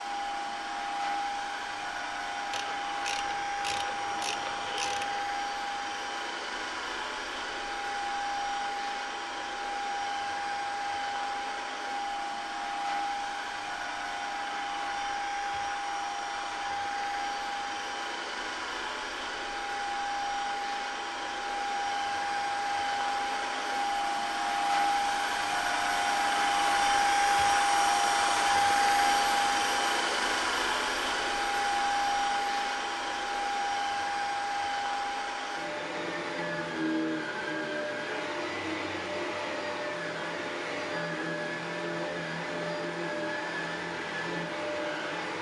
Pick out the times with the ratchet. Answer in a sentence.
The ratchet can be heard from 2.5 to 5.3 s.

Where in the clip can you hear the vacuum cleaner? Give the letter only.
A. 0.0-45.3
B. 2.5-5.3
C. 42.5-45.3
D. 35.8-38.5
A.